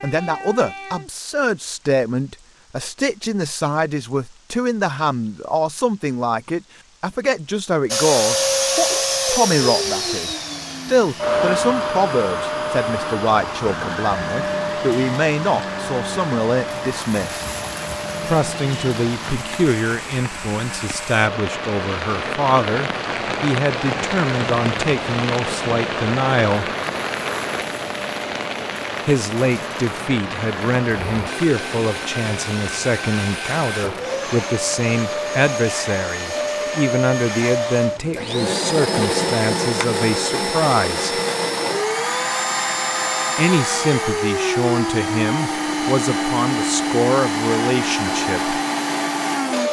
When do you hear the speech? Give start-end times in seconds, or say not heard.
0.0-17.4, 18.2-26.7, 29.1-41.1, 43.4-48.5.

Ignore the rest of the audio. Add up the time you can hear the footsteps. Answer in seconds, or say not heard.
not heard.